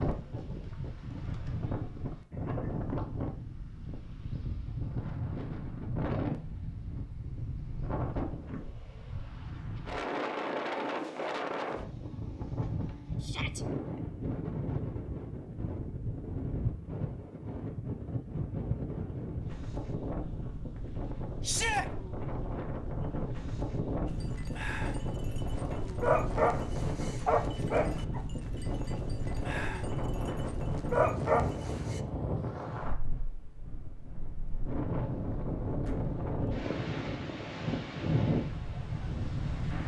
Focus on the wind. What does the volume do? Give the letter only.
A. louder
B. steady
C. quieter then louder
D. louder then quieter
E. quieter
B.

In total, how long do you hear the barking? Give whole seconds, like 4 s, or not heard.
8 s.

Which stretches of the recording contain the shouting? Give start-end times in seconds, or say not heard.
13.2-13.7, 21.4-21.9.